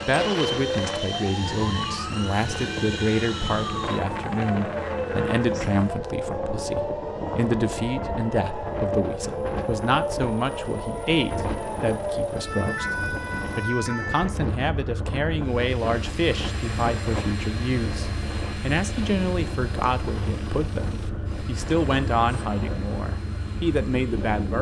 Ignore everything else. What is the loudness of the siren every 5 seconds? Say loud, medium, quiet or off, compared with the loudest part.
loud, loud, loud, medium, medium.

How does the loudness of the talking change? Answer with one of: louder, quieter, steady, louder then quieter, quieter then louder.
steady.